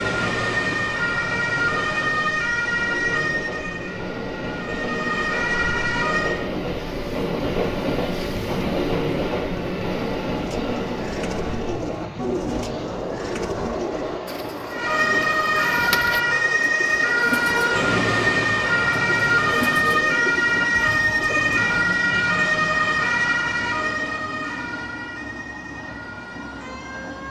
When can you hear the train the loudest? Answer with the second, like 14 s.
9 s.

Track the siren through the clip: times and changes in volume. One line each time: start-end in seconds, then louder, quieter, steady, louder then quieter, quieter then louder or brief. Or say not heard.
0.0-6.5 quieter then louder
14.7-27.2 quieter.